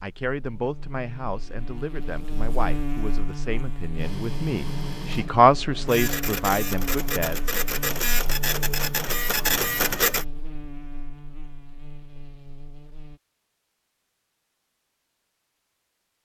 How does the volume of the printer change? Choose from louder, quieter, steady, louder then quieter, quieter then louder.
louder.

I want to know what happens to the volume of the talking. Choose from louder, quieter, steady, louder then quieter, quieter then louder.
louder then quieter.